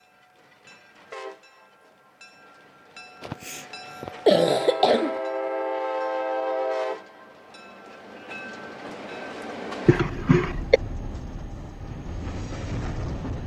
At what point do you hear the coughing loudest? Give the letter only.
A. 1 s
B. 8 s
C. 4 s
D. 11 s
C.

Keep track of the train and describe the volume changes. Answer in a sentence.
The volume of the train goes up, then down.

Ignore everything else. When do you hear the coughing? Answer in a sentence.
You can hear the coughing from 3.2 to 5.2 s and from 9.8 to 10.8 s.